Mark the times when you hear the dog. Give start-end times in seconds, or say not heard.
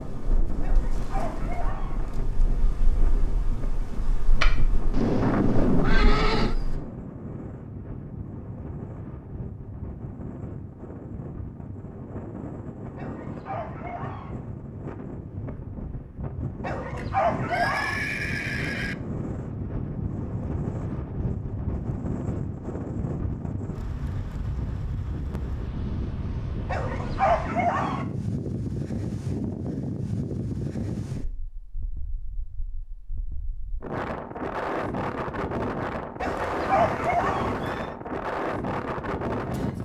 0.6-1.9, 12.9-14.3, 16.6-18.0, 26.6-28.1, 36.2-37.5.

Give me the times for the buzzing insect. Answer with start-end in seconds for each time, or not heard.
0.0-6.8.